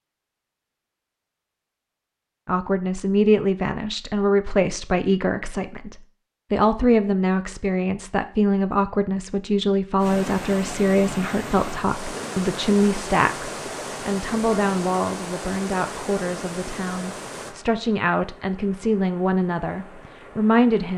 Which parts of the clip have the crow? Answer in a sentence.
You can't hear the crow here.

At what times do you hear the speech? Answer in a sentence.
You can hear the speech from 2.5 to 20.9 s.